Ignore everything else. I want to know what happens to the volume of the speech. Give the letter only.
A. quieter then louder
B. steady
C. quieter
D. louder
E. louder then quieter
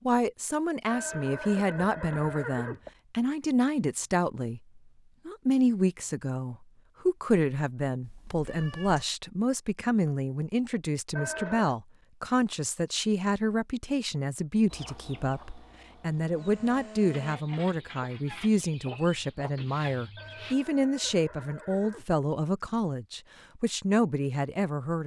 B.